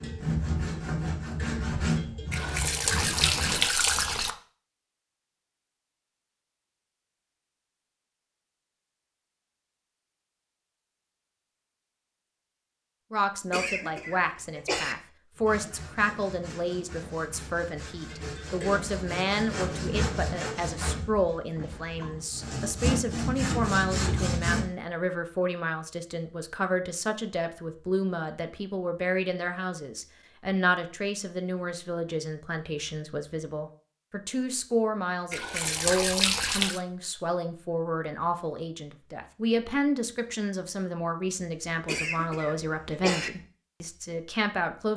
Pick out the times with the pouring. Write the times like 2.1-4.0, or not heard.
2.3-4.3, 35.3-36.8.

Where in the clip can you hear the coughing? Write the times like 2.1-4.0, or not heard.
13.5-14.9, 41.9-43.3.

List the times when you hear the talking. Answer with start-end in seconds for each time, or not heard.
13.1-44.9.